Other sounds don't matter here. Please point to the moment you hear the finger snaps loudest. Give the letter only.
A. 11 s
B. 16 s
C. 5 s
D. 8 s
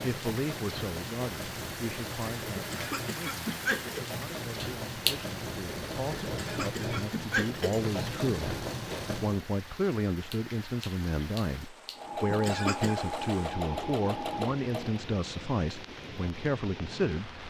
C.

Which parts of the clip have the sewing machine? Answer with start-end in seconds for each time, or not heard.
0.0-9.4, 11.9-15.1.